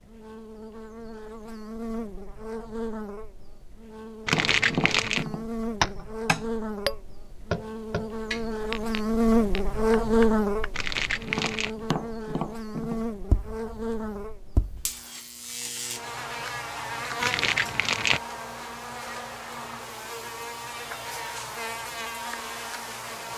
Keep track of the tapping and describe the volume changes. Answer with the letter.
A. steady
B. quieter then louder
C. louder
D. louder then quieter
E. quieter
E.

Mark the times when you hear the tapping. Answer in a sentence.
You can hear the tapping from 4.3 to 14.8 s.